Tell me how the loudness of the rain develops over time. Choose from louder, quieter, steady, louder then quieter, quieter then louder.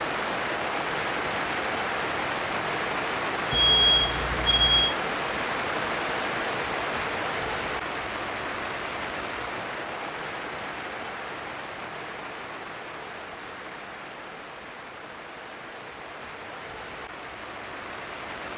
quieter.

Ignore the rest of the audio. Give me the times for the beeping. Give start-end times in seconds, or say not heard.
3.5-5.0.